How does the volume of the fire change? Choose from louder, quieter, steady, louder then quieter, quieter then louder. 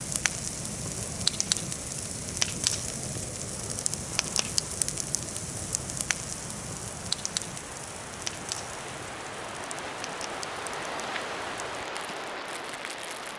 quieter.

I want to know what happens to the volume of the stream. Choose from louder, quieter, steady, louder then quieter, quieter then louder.
louder.